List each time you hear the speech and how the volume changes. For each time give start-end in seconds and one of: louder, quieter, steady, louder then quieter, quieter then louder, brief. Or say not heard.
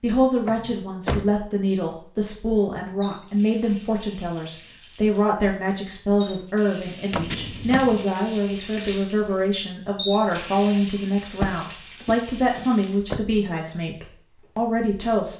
0.0-15.3 steady.